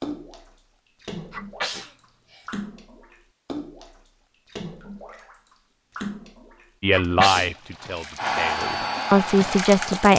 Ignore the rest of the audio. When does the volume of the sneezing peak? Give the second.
7 s.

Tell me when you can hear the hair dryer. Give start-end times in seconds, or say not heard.
8.2-10.1.